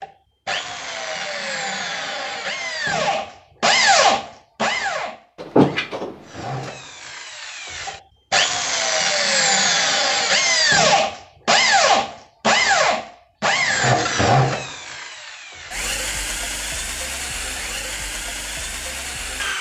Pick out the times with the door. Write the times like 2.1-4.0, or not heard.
5.4-6.7.